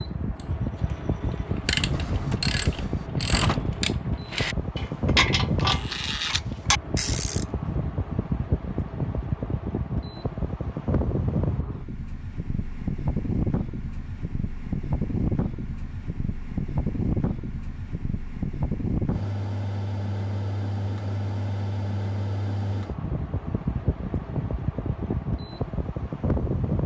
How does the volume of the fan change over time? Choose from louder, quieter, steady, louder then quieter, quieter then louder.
steady.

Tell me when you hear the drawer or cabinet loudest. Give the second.
3 s.